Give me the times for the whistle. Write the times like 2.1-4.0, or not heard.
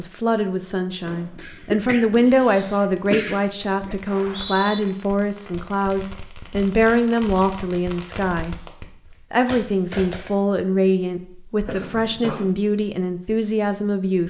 4.0-4.8.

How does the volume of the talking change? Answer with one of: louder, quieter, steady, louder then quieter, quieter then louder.
steady.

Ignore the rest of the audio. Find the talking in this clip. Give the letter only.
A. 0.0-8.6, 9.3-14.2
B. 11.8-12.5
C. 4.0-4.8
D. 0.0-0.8
A.